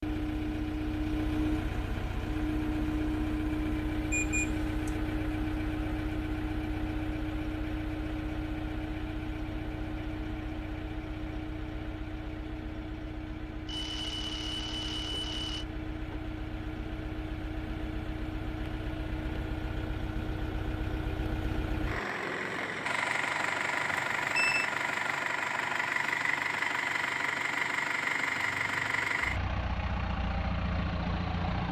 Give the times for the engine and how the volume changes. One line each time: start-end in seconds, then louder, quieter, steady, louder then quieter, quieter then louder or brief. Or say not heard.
0.0-31.6 quieter then louder.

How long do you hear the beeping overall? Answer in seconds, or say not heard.
4 s.